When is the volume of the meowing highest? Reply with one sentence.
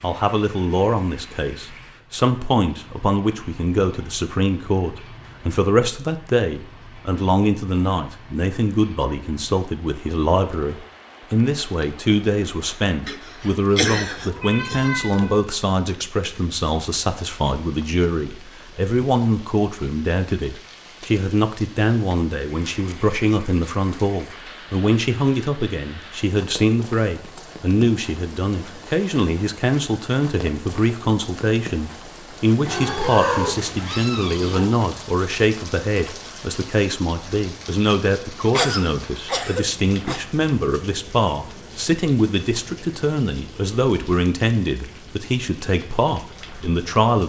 The volume of the meowing peaks at 33 seconds.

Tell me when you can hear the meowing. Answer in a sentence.
You can hear the meowing from 13.4 to 15.4 s and from 32.6 to 34.6 s.